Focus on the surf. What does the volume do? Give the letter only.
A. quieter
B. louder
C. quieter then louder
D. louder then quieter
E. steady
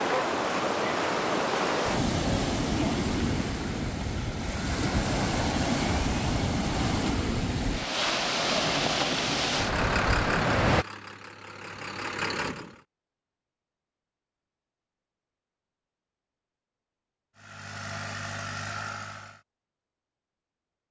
E.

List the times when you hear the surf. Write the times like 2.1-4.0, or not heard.
0.0-10.8.